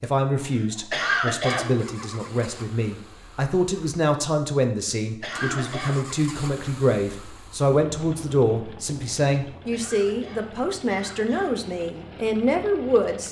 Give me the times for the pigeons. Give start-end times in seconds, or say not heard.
not heard.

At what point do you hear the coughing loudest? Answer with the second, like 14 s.
1 s.